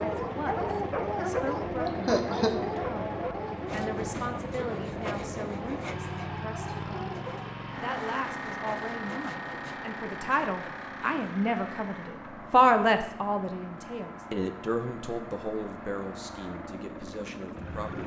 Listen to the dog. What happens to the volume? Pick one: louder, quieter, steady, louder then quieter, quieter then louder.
quieter.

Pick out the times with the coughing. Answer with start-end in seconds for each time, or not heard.
1.9-2.5.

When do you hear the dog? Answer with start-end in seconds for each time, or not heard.
0.0-7.5.